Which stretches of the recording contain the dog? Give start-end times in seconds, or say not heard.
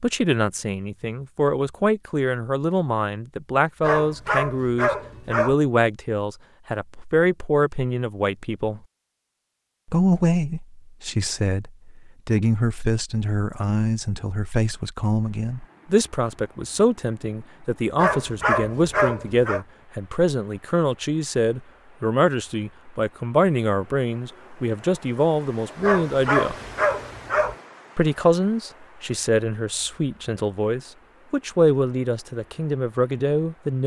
3.8-5.5, 17.9-19.6, 25.8-27.6.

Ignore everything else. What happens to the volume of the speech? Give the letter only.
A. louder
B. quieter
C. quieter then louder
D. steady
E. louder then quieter
D.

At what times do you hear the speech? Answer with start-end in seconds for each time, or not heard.
0.0-8.8, 9.8-26.6, 27.9-33.8.